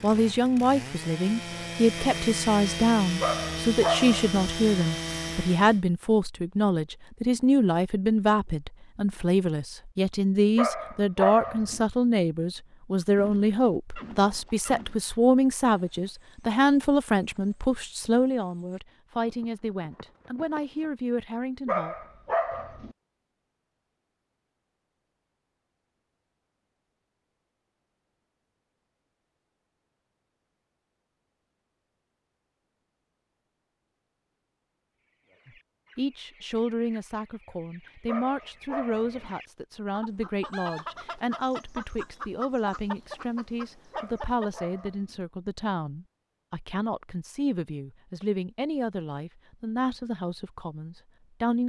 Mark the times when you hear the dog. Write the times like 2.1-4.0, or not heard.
3.2-4.5, 10.6-11.8, 21.6-22.9, 38.0-39.4, 43.9-45.2.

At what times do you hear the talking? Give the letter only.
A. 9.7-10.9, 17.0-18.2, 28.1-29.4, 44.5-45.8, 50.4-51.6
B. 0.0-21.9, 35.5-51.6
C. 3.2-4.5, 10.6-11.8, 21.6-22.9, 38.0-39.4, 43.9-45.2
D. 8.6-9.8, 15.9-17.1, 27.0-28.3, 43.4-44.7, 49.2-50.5
B.